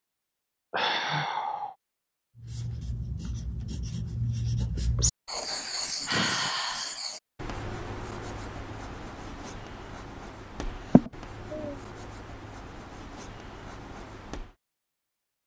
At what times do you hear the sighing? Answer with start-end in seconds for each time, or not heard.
0.7-1.8, 5.5-7.0, 10.9-11.8.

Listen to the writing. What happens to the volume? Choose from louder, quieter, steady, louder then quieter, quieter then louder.
quieter.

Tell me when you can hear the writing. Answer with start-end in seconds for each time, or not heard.
2.4-14.6.